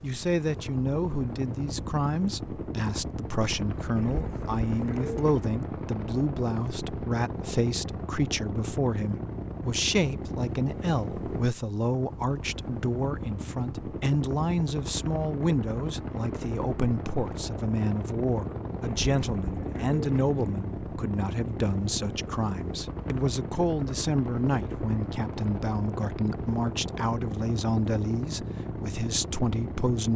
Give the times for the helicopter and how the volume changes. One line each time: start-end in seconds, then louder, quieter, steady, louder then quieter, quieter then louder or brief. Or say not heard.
0.0-30.1 steady.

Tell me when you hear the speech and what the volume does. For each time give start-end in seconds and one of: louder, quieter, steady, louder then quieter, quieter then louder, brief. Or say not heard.
0.0-30.1 steady.